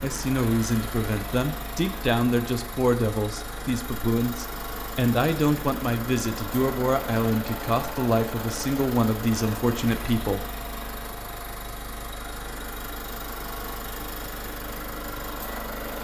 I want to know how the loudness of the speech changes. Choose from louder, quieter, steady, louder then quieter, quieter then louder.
steady.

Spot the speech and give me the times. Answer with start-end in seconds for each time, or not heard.
0.0-10.4.